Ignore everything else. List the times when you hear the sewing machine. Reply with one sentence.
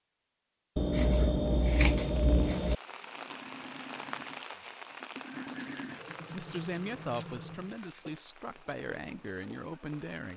You can hear the sewing machine from 3.0 to 10.3 s.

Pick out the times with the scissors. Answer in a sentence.
The scissors can be heard from 0.8 to 2.8 s and from 5.5 to 8.1 s.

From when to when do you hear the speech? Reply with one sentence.
You can hear the speech from 6.3 to 10.3 s.